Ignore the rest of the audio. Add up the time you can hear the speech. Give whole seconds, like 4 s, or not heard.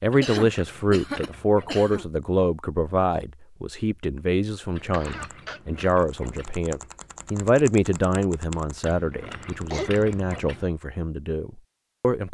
12 s.